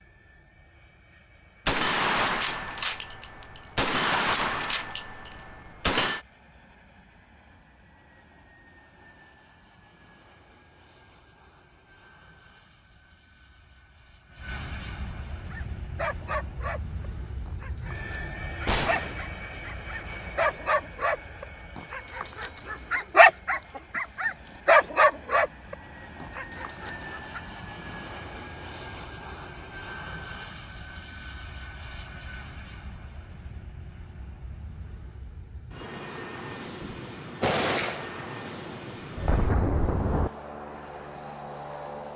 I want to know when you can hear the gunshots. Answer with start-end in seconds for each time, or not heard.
1.6-6.2, 18.6-19.2, 36.8-40.3.